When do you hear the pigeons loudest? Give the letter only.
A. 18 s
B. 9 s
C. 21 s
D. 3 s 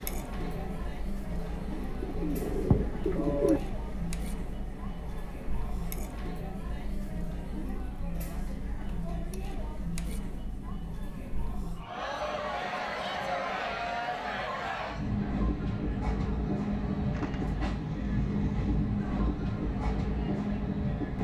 D.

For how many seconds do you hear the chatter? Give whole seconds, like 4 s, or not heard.
21 s.